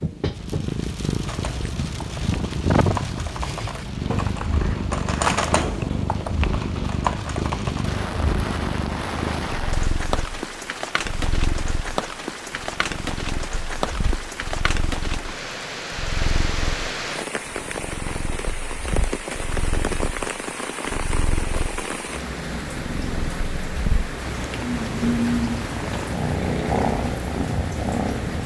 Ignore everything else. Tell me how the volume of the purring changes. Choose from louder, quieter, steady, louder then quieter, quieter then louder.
quieter then louder.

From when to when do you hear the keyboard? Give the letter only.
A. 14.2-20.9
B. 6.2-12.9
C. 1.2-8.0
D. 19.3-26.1
C.